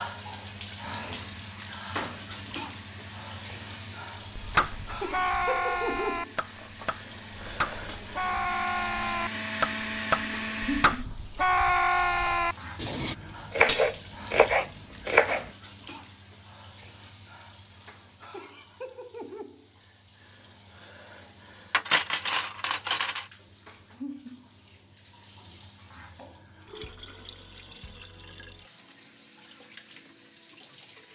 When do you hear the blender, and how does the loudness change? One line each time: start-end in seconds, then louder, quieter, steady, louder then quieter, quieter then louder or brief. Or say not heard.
0.0-11.1 louder.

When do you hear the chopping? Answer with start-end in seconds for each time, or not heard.
4.3-15.5.